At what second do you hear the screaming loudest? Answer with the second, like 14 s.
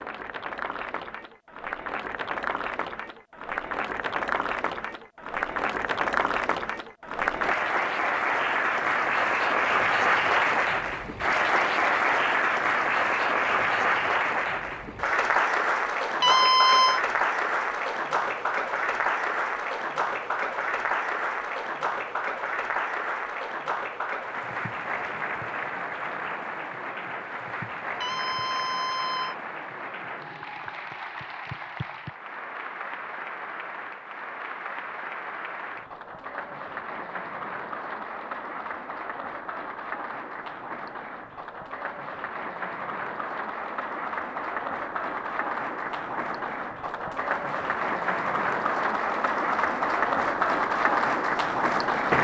17 s.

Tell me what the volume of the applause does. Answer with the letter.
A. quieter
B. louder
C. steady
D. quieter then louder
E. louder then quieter
D.